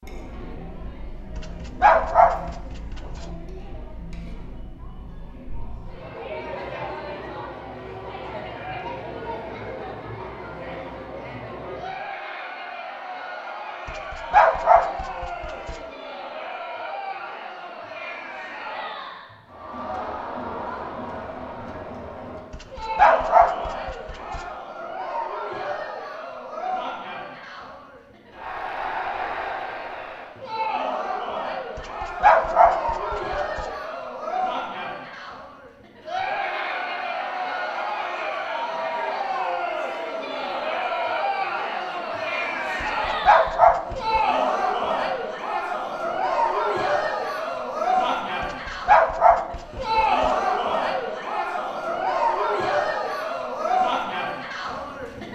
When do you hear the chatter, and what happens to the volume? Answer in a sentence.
The chatter can be heard from 0.0 to 55.3 s, getting louder.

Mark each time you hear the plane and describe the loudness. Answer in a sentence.
You can't hear the plane here.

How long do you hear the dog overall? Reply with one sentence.
The dog can be heard for 11 seconds in total.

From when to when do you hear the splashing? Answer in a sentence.
You can't hear the splashing here.